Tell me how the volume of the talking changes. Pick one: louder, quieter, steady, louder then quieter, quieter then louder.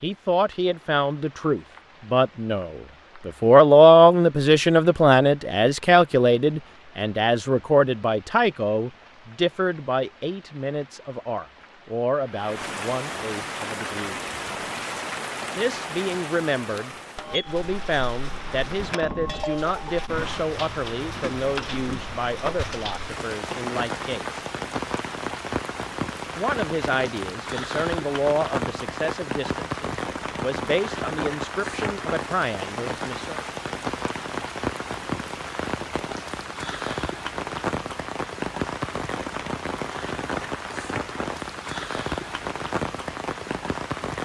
quieter.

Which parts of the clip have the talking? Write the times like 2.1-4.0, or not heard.
0.0-14.2, 15.6-24.4, 26.4-33.4.